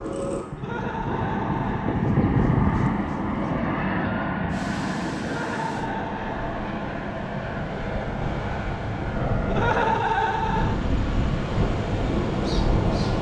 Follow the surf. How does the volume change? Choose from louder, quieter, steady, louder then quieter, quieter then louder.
louder.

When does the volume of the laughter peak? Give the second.
10 s.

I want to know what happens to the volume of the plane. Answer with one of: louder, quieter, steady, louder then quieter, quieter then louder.
quieter.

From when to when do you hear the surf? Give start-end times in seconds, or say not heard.
4.5-13.1.